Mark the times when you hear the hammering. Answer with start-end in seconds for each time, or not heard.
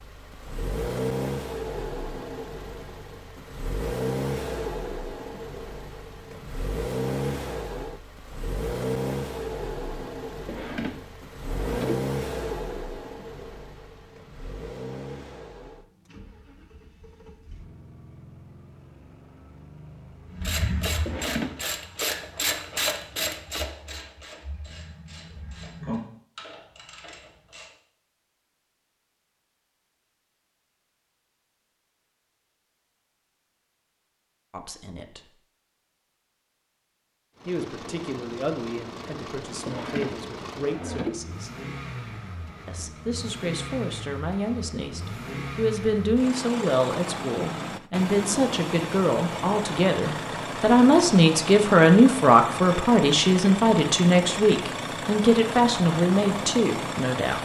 not heard.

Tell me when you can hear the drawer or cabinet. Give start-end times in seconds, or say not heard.
10.4-12.1, 21.1-21.6, 39.6-41.2.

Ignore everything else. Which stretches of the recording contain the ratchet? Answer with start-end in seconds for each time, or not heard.
20.3-27.7.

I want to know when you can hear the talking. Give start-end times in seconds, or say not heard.
34.5-35.3, 37.5-41.5, 42.6-57.3.